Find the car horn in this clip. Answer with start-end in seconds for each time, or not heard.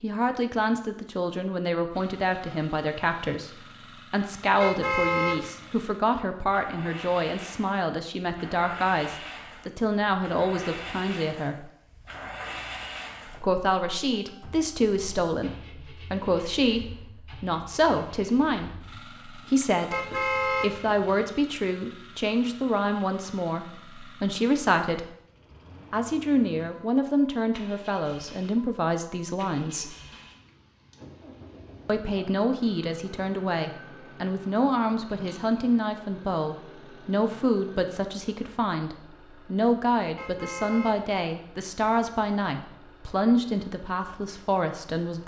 4.6-5.5, 19.9-21.2, 40.1-41.1.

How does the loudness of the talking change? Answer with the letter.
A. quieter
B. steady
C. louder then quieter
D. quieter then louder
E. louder
B.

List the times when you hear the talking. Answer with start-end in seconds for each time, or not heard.
0.0-11.7, 13.4-25.1, 25.9-29.9, 31.9-45.2.